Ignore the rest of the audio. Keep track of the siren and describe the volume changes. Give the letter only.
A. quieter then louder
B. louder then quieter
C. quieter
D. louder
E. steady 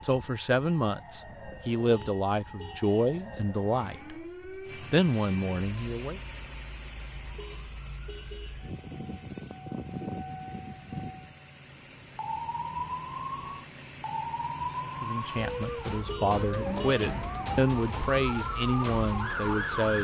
D.